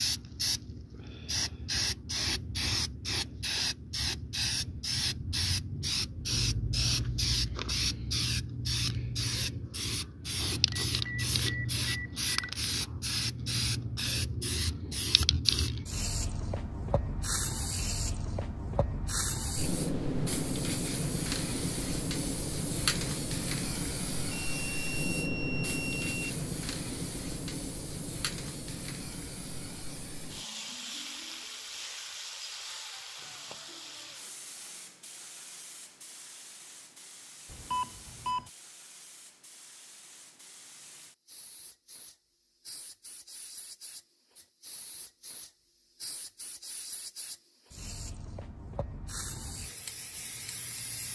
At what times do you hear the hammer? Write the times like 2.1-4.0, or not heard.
not heard.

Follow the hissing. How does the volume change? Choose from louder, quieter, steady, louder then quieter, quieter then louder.
quieter.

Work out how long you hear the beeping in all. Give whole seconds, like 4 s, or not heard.
5 s.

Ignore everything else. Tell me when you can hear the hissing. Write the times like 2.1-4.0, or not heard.
0.0-51.1.